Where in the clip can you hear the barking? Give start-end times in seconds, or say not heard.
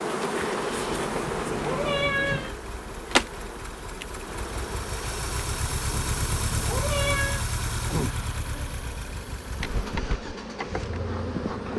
not heard.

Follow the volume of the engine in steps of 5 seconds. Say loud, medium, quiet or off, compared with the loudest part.
medium, loud, medium.